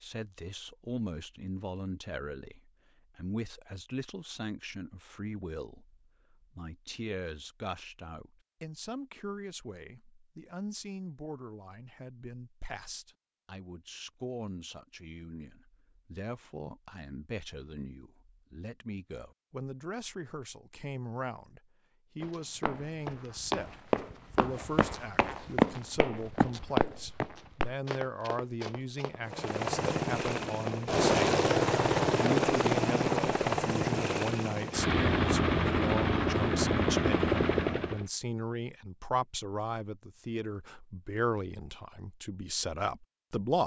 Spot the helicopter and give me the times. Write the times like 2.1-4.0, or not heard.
29.2-38.0.